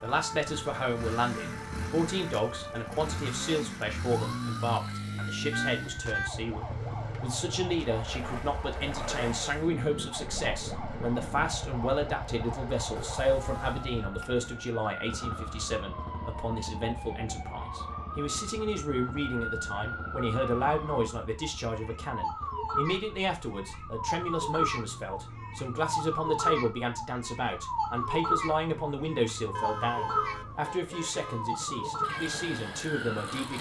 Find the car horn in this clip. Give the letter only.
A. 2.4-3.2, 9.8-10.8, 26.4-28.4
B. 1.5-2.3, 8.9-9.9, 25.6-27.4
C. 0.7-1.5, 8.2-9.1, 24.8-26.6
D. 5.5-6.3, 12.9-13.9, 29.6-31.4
D.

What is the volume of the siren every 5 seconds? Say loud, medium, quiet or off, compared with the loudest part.
medium, medium, medium, medium, loud, loud, loud.